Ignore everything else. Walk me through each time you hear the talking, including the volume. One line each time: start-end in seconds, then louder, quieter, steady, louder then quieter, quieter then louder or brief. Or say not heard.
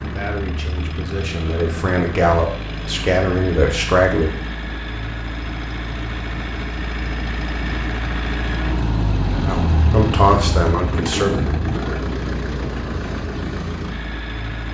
0.0-4.3 louder
9.4-11.4 brief.